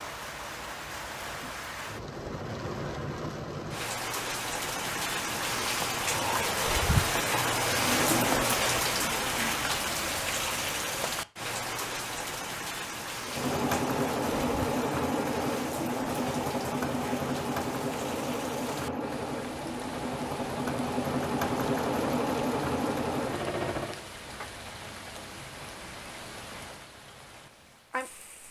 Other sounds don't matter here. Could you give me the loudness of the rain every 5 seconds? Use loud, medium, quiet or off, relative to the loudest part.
medium, loud, medium, quiet, quiet, quiet.